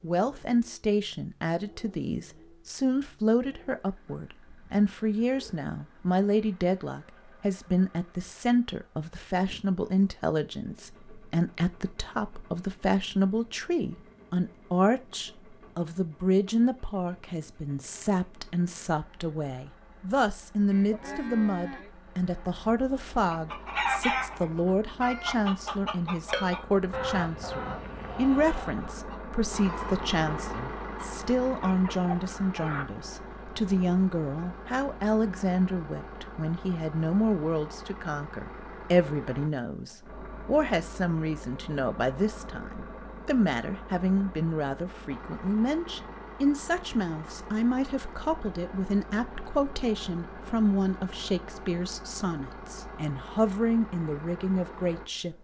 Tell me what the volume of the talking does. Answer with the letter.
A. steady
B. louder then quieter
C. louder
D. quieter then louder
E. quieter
A.